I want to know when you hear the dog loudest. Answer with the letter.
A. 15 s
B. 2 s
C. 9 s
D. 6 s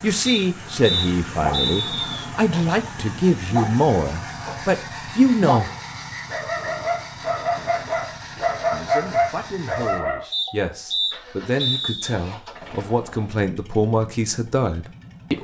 C.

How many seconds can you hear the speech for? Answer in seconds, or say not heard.
12 s.